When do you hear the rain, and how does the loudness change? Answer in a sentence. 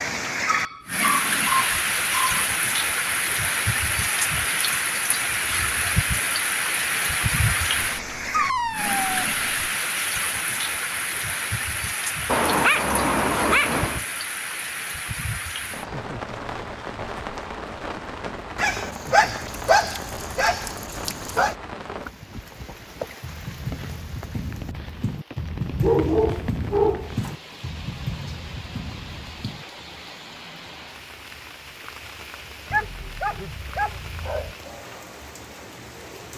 You can hear the rain from 0.0 to 36.3 s, getting quieter.